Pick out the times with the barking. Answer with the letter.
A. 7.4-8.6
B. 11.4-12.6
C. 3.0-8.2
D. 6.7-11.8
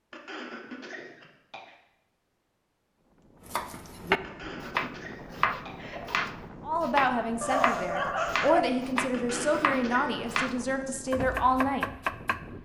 A.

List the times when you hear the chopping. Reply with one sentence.
You can hear the chopping from 3.5 to 12.6 s.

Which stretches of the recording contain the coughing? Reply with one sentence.
The coughing can be heard from 0.1 to 1.8 s, from 4.2 to 6.2 s and from 9.1 to 10.2 s.